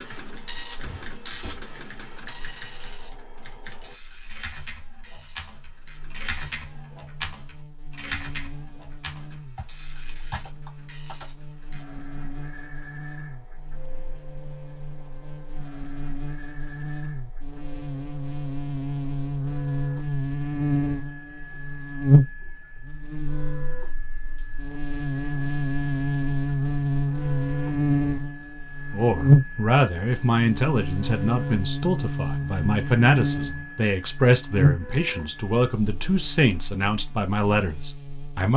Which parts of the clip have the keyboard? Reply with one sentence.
You can hear the keyboard from 0.0 to 11.3 s.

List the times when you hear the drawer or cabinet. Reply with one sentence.
You can hear the drawer or cabinet from 0.8 to 1.6 s.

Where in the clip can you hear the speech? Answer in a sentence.
You can hear the speech from 28.9 to 38.5 s.